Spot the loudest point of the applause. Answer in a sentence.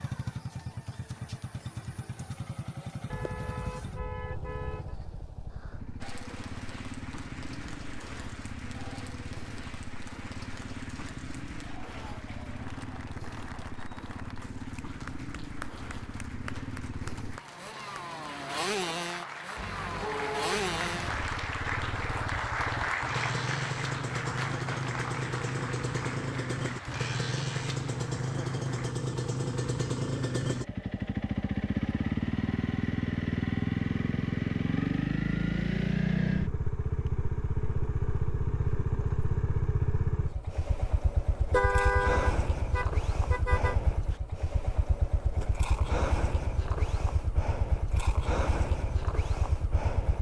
The volume of the applause peaks at 23 seconds.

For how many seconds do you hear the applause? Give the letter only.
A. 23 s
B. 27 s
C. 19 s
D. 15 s
A.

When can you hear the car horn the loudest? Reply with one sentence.
The volume of the car horn peaks at 42 seconds.